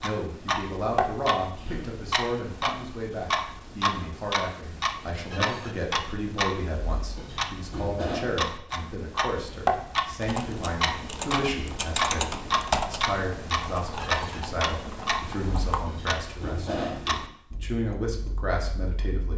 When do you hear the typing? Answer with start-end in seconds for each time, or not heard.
10.2-15.9.